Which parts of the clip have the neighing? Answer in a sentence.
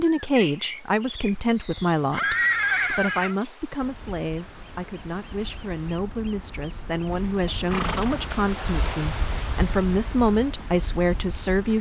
The neighing can be heard from 1.9 to 3.4 s and from 7.2 to 8.4 s.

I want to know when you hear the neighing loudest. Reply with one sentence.
The loudest moment of the neighing is at 3 seconds.